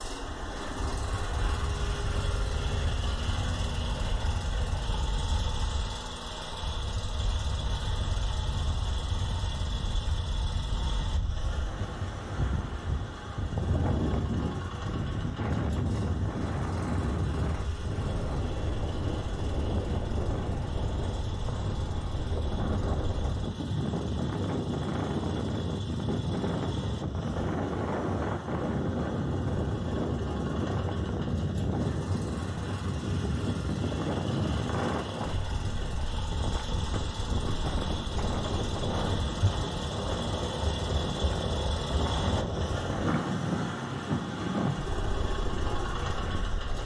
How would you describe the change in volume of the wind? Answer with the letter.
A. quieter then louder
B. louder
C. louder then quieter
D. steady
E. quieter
B.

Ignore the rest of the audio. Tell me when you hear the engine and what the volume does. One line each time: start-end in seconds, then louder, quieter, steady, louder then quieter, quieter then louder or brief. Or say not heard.
0.0-46.8 quieter then louder.